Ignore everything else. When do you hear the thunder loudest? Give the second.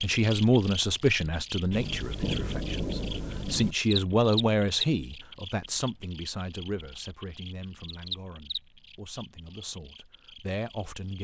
2 s.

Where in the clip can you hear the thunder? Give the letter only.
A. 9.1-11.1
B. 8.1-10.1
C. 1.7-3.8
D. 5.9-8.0
C.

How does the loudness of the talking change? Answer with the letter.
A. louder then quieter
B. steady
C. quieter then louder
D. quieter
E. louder
D.